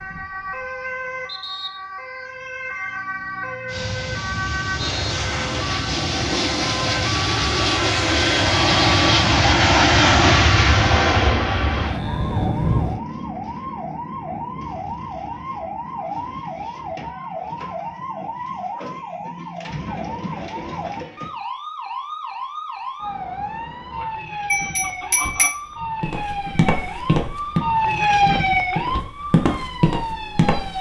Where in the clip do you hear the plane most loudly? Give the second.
10 s.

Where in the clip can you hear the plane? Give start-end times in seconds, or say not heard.
3.6-13.0.